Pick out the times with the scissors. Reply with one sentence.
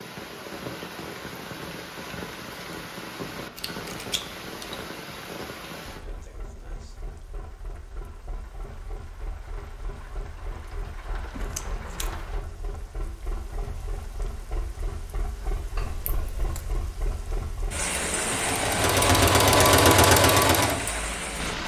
You can hear the scissors from 3.5 to 4.8 s, from 11.3 to 12.2 s and from 15.8 to 16.8 s.